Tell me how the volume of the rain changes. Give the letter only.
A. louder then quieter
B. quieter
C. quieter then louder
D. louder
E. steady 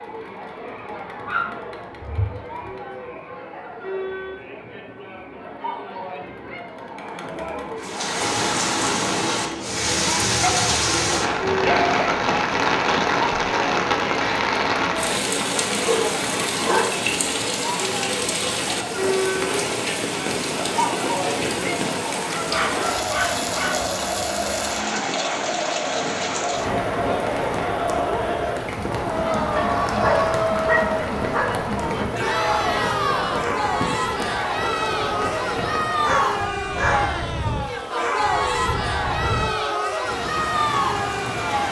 B.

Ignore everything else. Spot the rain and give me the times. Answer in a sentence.
The rain can be heard from 7.8 to 41.6 s.